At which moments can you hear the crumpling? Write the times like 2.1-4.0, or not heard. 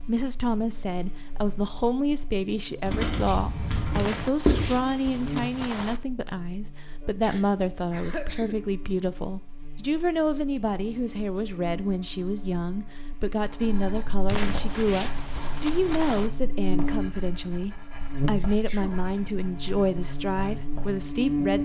4.0-6.0, 14.2-16.3.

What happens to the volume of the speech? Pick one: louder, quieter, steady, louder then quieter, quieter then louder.
steady.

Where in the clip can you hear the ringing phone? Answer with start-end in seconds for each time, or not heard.
not heard.